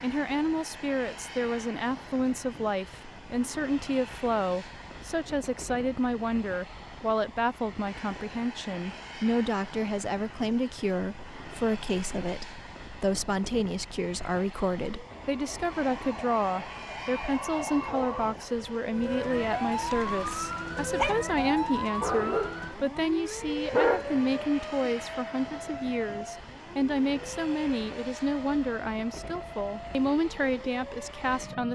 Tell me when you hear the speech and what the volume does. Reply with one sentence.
The speech can be heard from 0.0 to 31.7 s, at a steady volume.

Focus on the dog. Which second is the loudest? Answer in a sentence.
The loudest moment of the dog is at 24 seconds.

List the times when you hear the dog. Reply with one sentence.
The dog can be heard from 19.9 to 21.2 s and from 22.0 to 24.9 s.